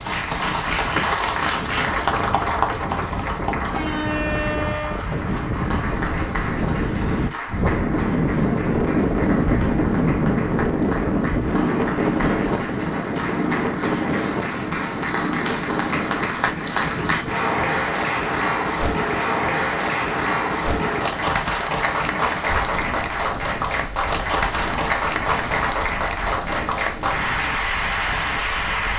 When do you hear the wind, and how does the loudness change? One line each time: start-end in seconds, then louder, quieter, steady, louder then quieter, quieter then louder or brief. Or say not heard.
0.0-28.9 louder then quieter.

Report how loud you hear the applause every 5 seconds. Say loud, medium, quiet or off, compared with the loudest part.
loud, medium, medium, loud, loud, loud.